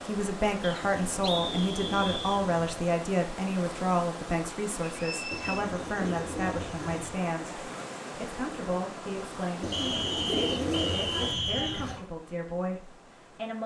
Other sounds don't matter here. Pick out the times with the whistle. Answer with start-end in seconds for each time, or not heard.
0.6-2.5, 4.8-5.7, 9.7-11.9.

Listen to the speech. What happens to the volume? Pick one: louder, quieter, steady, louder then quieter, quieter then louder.
quieter.